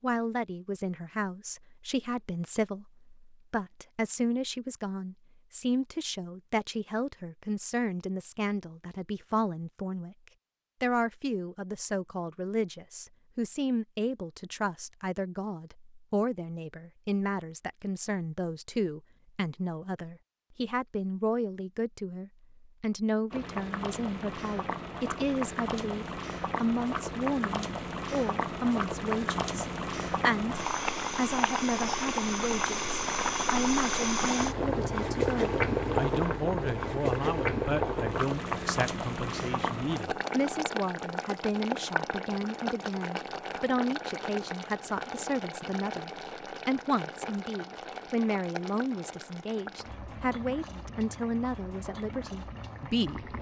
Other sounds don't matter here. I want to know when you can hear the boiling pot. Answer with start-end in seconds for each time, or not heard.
23.3-53.3.